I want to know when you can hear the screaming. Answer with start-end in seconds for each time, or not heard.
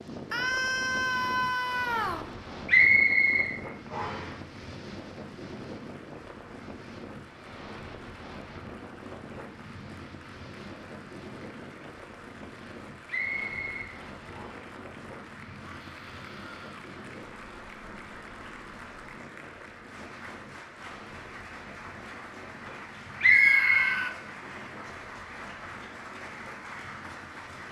0.3-2.3, 15.6-16.9, 23.2-24.1.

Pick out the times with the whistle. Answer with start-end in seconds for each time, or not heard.
2.6-4.2, 13.1-14.7, 23.2-23.9.